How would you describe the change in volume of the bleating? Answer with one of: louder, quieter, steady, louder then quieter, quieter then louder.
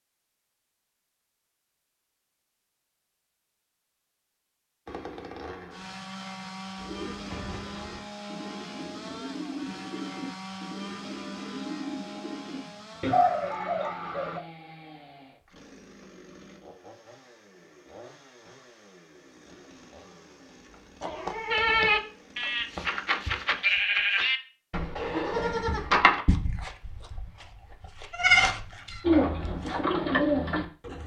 quieter then louder.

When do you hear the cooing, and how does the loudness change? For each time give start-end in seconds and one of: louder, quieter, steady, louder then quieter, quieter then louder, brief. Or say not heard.
6.8-14.4 louder
29.0-31.0 brief.